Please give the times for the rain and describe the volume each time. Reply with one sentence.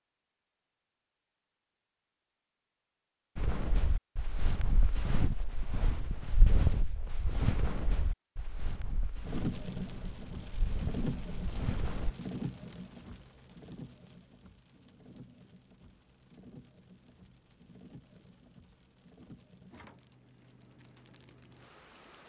The rain can be heard from 9.2 to 22.2 s, getting quieter.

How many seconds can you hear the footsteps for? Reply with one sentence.
The footsteps can be heard for 9 seconds in total.